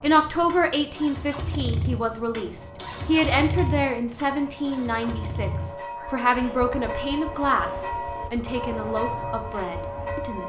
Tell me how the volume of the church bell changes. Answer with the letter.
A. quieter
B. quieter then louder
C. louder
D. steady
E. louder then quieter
C.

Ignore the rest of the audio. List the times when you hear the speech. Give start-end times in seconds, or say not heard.
0.0-10.4.